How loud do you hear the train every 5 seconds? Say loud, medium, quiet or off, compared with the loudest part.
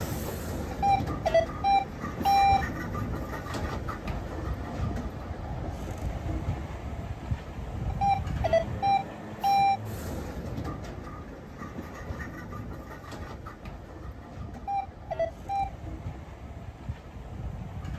loud, loud, medium, medium.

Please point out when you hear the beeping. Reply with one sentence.
The beeping can be heard from 0.7 to 2.6 s, from 7.9 to 9.8 s and from 14.6 to 15.7 s.